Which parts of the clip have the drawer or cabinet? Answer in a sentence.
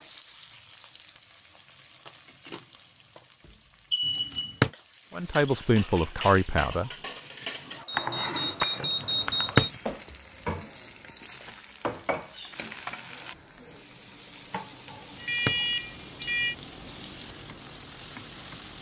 You can hear the drawer or cabinet from 4.0 to 4.7 s, from 9.0 to 9.7 s and from 14.9 to 15.6 s.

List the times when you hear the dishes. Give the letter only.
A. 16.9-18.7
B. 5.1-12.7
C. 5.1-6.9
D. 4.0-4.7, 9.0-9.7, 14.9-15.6
B.